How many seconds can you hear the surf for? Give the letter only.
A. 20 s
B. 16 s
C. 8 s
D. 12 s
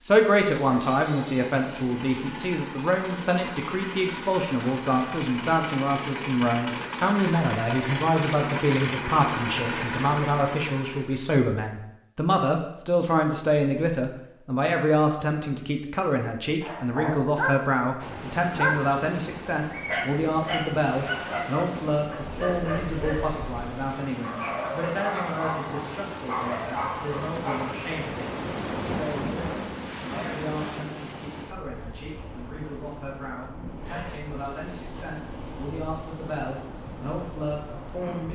A.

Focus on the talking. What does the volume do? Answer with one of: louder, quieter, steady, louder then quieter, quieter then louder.
quieter.